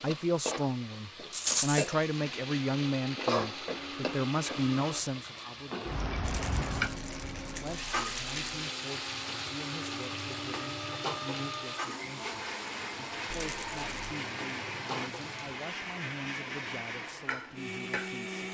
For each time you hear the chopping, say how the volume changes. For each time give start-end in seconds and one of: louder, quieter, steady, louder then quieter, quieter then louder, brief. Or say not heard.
not heard.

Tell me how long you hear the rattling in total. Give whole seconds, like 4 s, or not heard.
4 s.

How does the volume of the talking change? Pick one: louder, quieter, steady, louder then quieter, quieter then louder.
quieter.